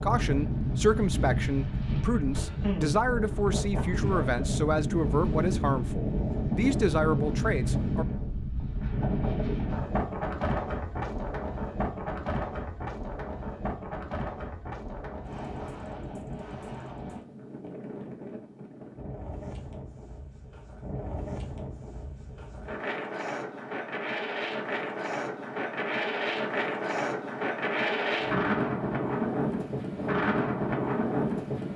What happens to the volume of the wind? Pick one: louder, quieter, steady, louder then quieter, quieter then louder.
quieter then louder.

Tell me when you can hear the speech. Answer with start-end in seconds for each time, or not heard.
0.0-8.1.